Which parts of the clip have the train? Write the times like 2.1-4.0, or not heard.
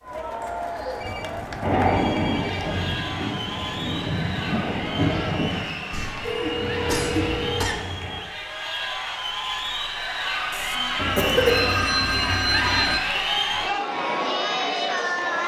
1.6-8.2.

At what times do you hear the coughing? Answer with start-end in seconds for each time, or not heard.
0.5-1.0, 5.9-7.8, 10.5-11.7.